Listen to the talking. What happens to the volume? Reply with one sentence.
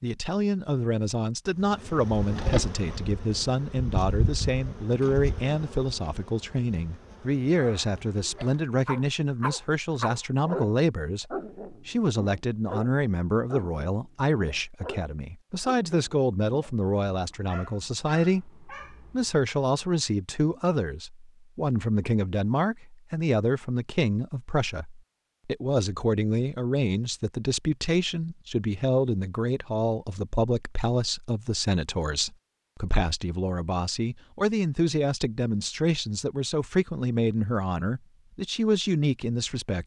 The volume of the talking stays about the same.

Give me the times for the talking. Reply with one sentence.
You can hear the talking from 0.0 to 39.8 s.